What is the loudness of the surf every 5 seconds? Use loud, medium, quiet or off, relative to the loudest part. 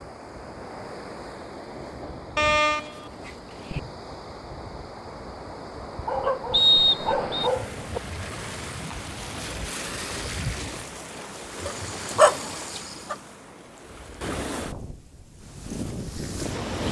medium, loud, loud, loud.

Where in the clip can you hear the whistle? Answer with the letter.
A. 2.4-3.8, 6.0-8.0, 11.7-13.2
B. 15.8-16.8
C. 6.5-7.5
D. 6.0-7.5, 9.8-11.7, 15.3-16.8
C.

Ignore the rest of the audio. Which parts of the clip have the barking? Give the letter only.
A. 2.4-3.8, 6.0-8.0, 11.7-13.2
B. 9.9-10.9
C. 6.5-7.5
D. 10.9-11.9
A.